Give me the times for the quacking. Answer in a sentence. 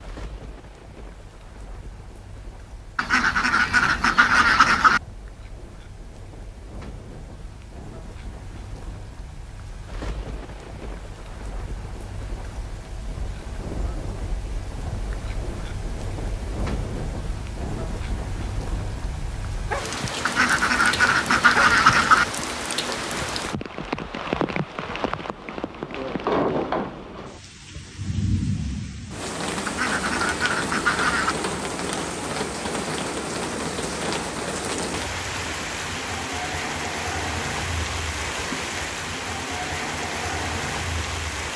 The quacking can be heard from 3.0 to 5.0 s, from 20.2 to 22.2 s and from 29.6 to 31.4 s.